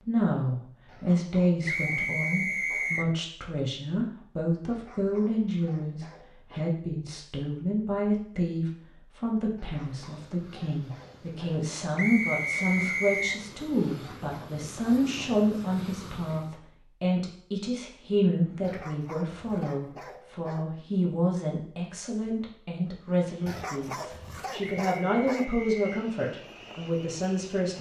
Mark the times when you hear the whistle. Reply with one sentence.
The whistle can be heard from 1.6 to 3.1 s, from 11.9 to 13.4 s and from 24.6 to 26.0 s.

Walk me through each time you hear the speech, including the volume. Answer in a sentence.
The speech can be heard from 0.1 to 27.7 s, at a steady volume.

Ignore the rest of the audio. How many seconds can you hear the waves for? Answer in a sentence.
The waves can't be heard in this clip.